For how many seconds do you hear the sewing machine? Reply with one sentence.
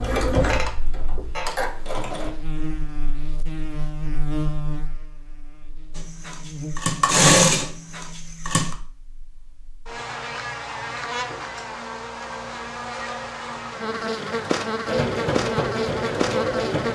You can hear the sewing machine for 7 seconds altogether.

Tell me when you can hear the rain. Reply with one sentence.
You can't hear the rain here.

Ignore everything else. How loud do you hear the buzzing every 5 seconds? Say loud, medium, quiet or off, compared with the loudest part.
medium, medium, loud, loud.